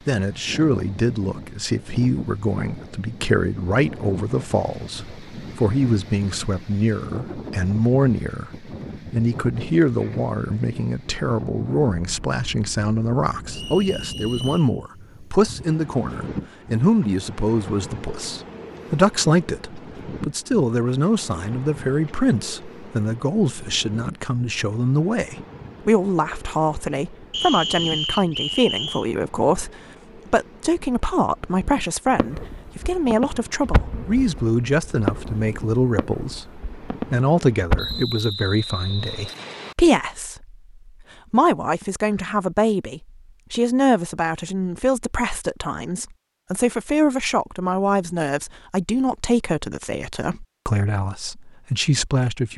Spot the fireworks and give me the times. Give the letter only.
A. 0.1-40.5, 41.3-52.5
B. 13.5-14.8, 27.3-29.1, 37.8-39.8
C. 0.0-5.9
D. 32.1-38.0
D.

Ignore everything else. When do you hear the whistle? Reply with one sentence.
You can hear the whistle from 13.5 to 14.8 s, from 27.3 to 29.1 s and from 37.8 to 39.8 s.